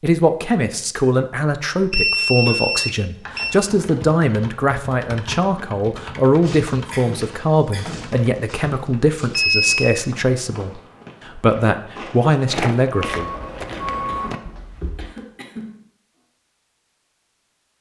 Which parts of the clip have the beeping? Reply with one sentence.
The beeping can be heard from 1.9 to 3.5 s, from 9.3 to 9.9 s and from 12.9 to 14.3 s.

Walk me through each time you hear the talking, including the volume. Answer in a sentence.
The talking can be heard from 0.0 to 13.3 s, at a steady volume.